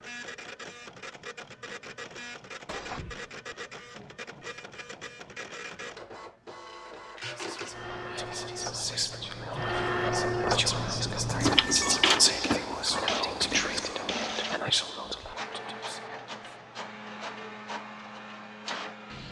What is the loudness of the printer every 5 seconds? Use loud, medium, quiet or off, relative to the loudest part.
quiet, medium, loud, medium.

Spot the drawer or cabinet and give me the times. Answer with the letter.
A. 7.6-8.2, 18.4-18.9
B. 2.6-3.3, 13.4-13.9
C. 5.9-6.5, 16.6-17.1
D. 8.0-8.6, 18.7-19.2
B.